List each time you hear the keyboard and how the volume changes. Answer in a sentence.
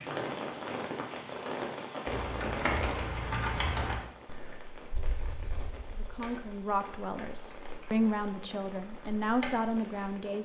You can hear the keyboard from 2.0 to 9.8 s, getting quieter then louder.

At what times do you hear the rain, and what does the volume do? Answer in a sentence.
The rain can be heard from 0.0 to 10.4 s, getting quieter.